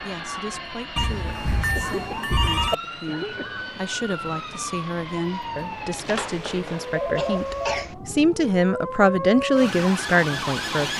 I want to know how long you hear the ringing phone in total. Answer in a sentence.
The ringing phone can be heard for 4 seconds in total.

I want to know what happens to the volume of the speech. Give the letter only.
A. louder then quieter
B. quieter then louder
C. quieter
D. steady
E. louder
E.